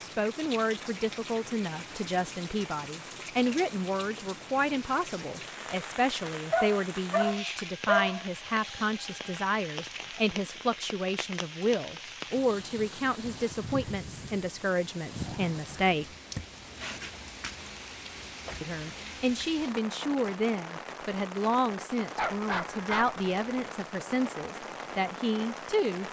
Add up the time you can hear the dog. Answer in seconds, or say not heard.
3 s.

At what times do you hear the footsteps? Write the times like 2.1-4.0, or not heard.
not heard.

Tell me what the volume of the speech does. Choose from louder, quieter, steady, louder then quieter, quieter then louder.
steady.